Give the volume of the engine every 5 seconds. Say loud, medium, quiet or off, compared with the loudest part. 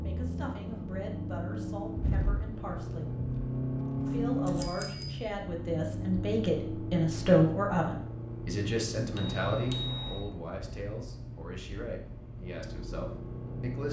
loud, loud, medium.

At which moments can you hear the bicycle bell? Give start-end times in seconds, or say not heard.
4.0-5.2, 9.2-10.2.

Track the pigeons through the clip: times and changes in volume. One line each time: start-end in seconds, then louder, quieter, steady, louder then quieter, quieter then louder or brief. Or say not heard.
not heard.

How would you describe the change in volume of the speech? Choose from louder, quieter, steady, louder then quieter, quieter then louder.
louder then quieter.